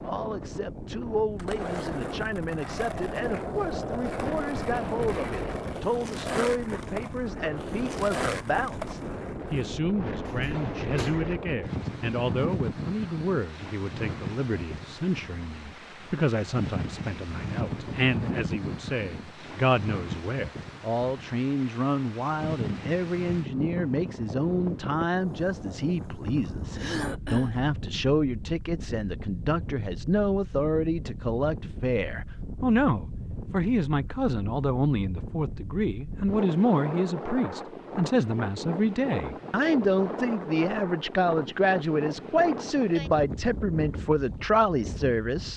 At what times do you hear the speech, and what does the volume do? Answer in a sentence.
The speech can be heard from 0.0 to 45.5 s, getting louder.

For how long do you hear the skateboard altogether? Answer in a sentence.
The skateboard can be heard for 8 seconds in total.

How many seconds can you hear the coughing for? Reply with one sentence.
The coughing can be heard for 2 seconds in total.